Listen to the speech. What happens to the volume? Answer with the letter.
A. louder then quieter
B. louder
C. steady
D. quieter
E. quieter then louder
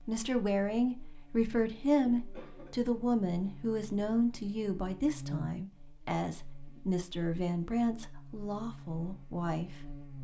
D.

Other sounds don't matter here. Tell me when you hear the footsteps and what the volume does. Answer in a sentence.
You can't hear the footsteps here.